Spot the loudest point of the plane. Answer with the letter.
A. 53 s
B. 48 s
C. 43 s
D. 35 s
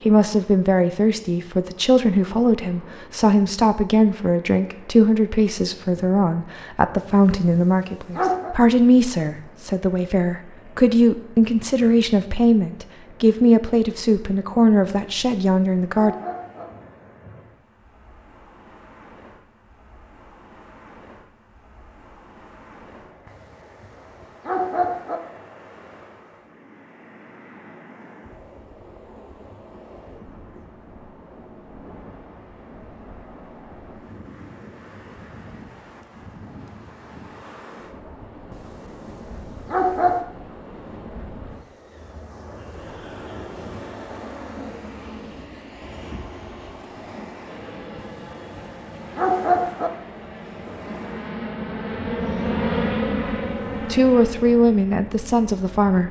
A.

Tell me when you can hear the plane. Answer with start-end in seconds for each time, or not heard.
42.5-56.0.